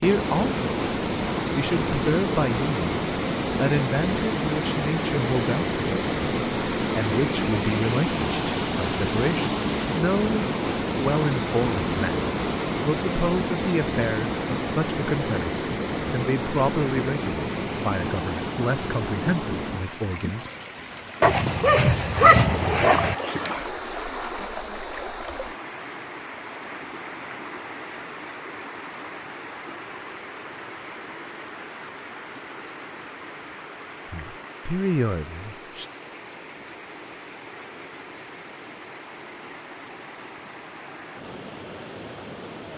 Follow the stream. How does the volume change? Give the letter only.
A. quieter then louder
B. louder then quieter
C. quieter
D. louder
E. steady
C.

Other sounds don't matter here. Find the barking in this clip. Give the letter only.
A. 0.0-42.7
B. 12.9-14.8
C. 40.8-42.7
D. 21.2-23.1
D.